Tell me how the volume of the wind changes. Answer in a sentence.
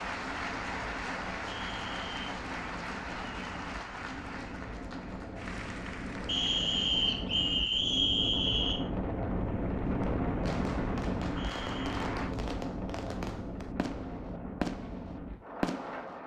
The volume of the wind goes up, then down.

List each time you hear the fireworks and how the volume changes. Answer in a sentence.
The fireworks can be heard from 9.8 to 16.2 s, getting louder.